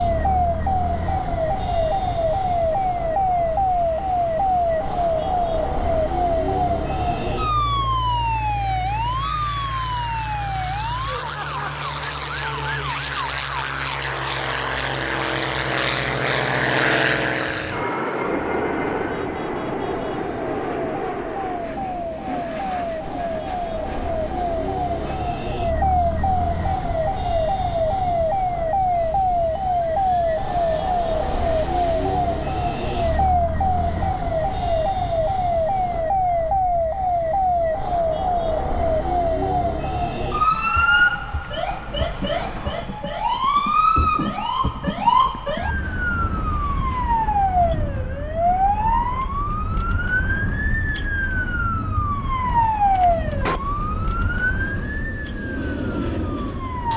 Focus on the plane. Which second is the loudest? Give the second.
17 s.